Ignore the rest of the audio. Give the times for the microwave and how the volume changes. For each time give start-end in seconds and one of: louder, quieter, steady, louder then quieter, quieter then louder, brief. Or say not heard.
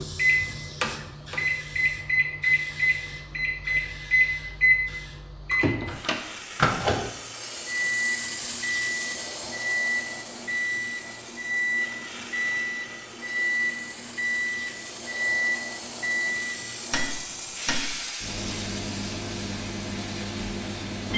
0.0-21.1 quieter.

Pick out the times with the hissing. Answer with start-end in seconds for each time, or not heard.
0.0-21.1.